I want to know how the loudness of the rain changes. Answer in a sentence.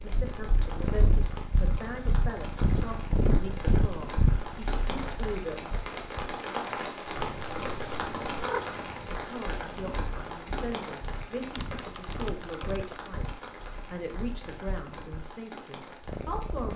The loudness of the rain goes up, then down.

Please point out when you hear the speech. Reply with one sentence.
The speech can be heard from 0.0 to 5.8 s and from 9.1 to 16.7 s.